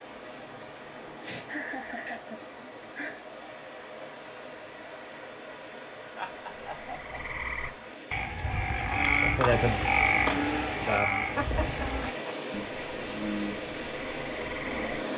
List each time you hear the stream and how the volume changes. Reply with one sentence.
You can hear the stream from 0.0 to 15.1 s, getting louder.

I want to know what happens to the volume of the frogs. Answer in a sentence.
The loudness of the frogs goes up, then down.